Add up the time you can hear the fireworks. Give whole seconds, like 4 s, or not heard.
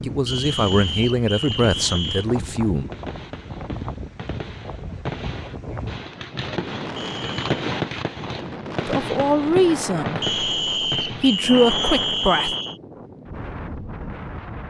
11 s.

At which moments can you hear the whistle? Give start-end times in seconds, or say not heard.
0.2-2.2, 7.0-7.5, 10.2-12.8.